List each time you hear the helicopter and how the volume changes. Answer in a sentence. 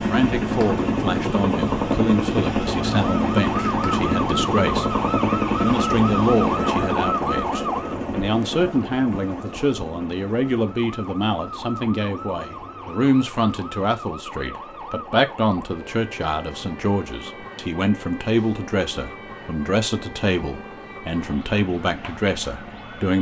The helicopter can be heard from 0.0 to 23.1 s, getting quieter.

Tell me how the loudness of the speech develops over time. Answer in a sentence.
The volume of the speech stays about the same.